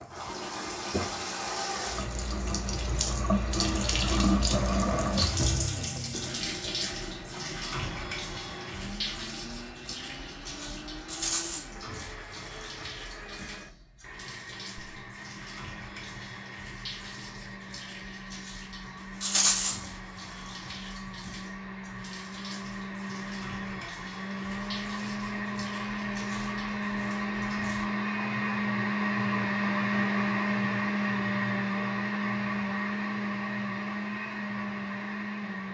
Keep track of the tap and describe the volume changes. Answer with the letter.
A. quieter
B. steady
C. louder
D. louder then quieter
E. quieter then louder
A.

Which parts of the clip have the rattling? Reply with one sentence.
The rattling can be heard from 11.1 to 11.7 s and from 19.2 to 19.8 s.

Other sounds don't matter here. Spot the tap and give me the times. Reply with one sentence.
The tap can be heard from 0.0 to 27.9 s.